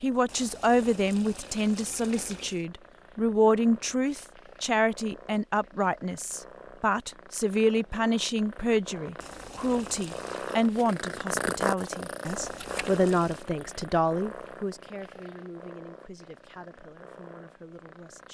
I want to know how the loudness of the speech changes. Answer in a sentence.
The loudness of the speech goes down.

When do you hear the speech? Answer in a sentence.
The speech can be heard from 0.0 to 18.2 s.